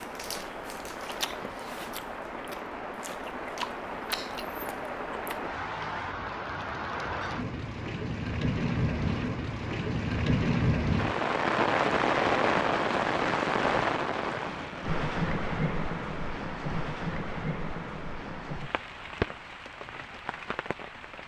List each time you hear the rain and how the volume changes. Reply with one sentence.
You can hear the rain from 0.0 to 21.2 s, getting louder then quieter.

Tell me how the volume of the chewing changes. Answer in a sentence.
The loudness of the chewing goes down, then up.